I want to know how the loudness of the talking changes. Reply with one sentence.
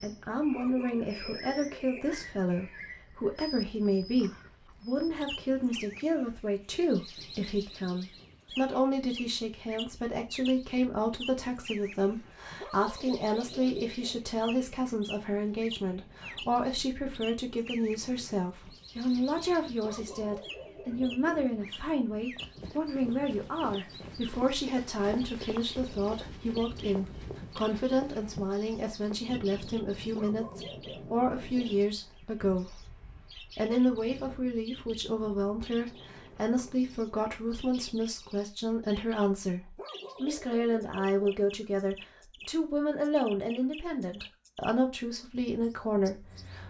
The loudness of the talking stays about the same.